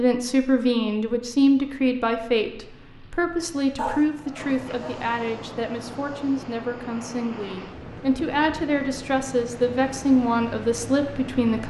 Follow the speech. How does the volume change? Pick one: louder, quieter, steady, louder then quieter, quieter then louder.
quieter then louder.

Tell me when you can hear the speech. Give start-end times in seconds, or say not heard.
0.0-11.6.